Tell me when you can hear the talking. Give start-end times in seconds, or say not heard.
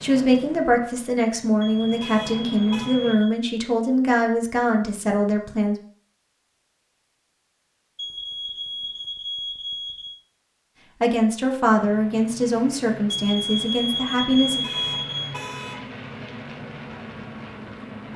0.0-5.8, 11.0-14.7.